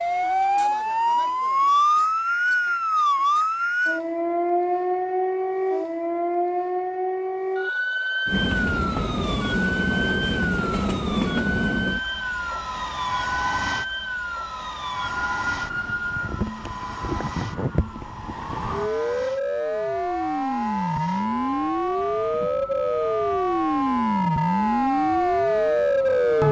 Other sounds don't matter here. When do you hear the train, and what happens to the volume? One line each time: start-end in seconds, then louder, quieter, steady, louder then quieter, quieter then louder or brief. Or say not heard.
8.2-26.4 quieter.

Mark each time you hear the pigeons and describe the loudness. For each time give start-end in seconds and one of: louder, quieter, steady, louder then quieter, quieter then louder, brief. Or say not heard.
not heard.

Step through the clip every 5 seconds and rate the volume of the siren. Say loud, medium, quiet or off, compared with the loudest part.
loud, medium, medium, medium, loud, loud.